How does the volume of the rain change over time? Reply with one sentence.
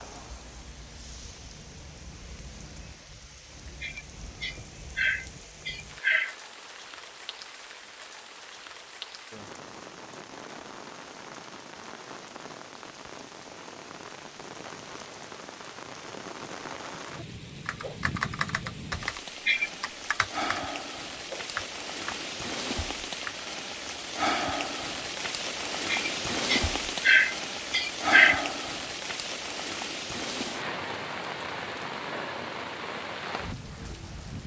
The volume of the rain goes up.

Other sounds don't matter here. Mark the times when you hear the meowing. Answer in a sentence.
You can't hear the meowing here.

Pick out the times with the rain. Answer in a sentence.
The rain can be heard from 0.0 to 34.4 s.